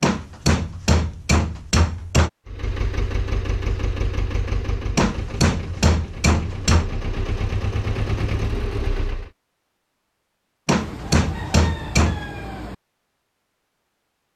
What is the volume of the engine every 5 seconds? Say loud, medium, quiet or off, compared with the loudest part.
loud, loud, off.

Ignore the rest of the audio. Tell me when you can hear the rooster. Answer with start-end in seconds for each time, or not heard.
10.8-12.8.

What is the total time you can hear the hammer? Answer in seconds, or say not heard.
6 s.